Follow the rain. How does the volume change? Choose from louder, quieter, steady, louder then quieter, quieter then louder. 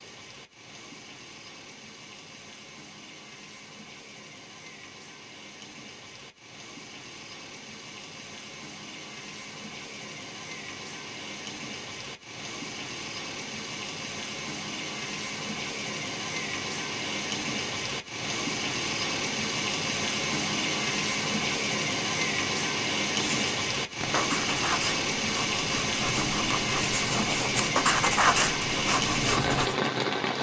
louder.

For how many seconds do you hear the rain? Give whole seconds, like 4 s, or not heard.
30 s.